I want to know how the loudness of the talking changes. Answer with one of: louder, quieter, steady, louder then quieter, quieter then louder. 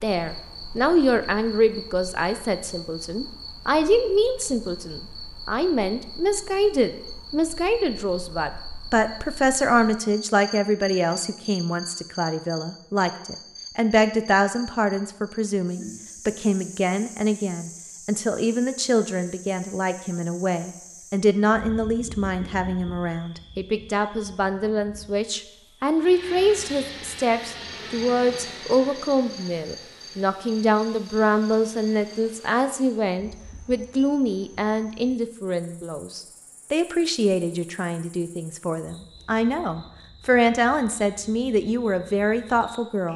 steady.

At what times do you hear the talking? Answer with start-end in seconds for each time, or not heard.
0.0-43.1.